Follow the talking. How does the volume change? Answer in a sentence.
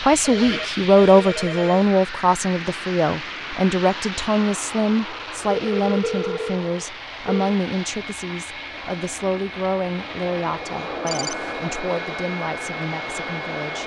The volume of the talking goes down.